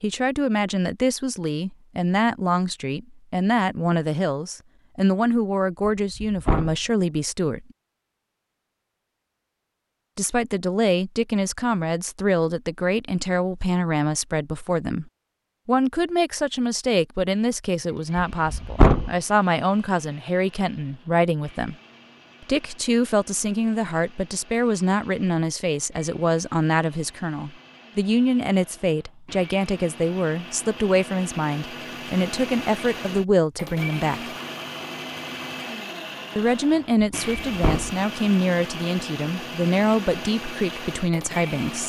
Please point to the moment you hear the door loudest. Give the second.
19 s.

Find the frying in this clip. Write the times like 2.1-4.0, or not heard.
not heard.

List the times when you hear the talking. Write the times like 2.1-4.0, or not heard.
0.0-7.7, 10.2-21.8, 22.4-34.3, 36.4-41.8.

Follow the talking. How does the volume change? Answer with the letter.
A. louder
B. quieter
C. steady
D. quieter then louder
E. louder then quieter
C.